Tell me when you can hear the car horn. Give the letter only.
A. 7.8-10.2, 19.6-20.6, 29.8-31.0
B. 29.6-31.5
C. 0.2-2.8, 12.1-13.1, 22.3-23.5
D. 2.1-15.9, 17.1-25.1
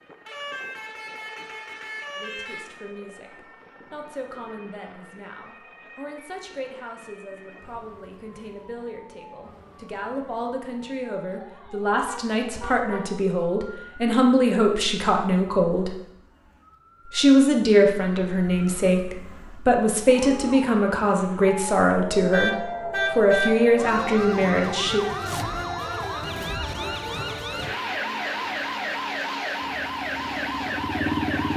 C.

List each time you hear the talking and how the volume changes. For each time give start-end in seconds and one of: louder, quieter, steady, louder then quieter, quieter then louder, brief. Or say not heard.
2.1-15.9 louder
17.1-25.1 steady.